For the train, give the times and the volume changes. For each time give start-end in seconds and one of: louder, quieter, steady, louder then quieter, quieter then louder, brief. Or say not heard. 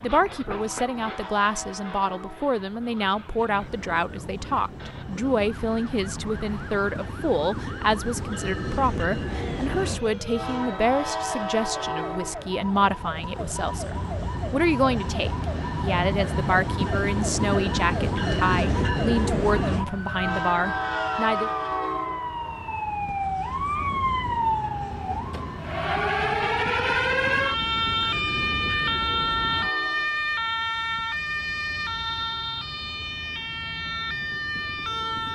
0.0-35.3 louder then quieter.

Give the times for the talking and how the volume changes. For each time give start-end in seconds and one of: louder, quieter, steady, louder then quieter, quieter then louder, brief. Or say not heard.
0.0-21.5 steady.